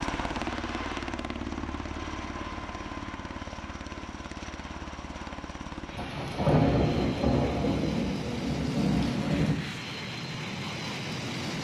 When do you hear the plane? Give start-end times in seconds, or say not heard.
0.0-11.5.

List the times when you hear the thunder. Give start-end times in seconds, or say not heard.
6.0-9.6.